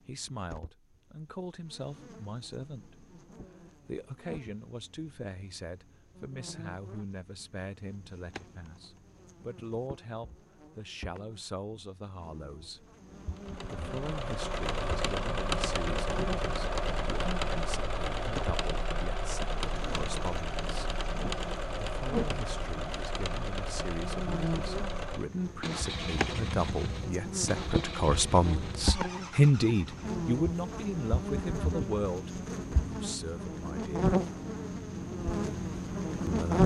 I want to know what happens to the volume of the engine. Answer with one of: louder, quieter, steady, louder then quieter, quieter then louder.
quieter.